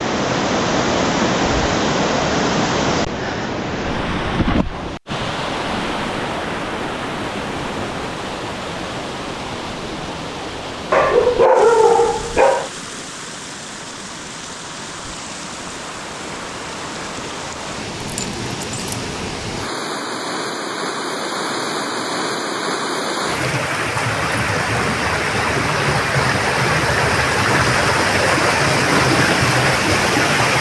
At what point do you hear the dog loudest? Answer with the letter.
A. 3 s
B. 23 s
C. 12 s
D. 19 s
C.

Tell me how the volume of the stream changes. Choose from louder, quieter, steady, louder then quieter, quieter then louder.
quieter then louder.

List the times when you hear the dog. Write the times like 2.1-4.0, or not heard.
10.9-12.7, 18.0-19.1.